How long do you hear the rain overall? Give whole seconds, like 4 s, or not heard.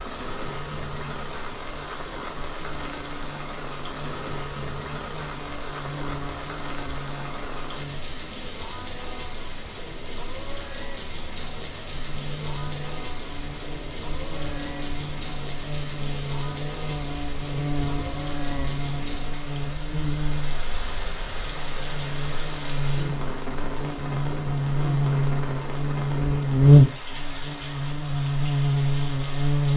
30 s.